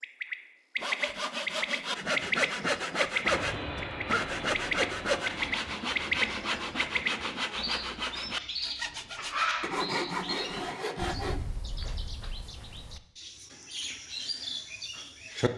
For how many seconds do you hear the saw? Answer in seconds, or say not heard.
11 s.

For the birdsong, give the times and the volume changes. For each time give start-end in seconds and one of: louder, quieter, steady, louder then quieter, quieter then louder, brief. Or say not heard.
0.0-15.5 quieter.